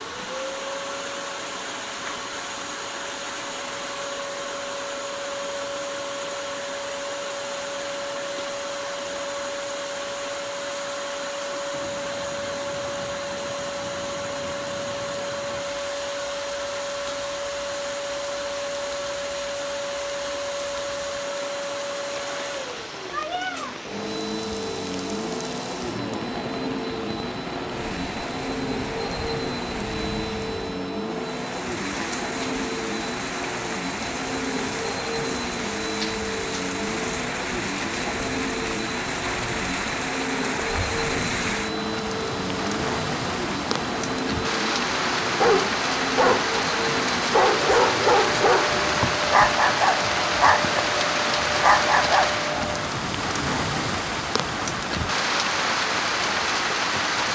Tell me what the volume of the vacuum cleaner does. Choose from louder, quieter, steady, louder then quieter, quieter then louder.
steady.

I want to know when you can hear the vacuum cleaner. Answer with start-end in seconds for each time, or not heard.
0.0-53.0.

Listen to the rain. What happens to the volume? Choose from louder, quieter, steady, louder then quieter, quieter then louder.
louder.